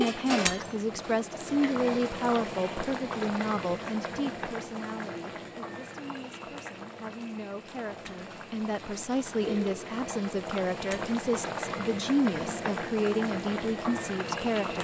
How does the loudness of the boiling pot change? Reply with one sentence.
The volume of the boiling pot goes down, then up.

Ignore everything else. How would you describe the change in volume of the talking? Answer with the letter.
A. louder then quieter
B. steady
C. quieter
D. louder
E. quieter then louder
E.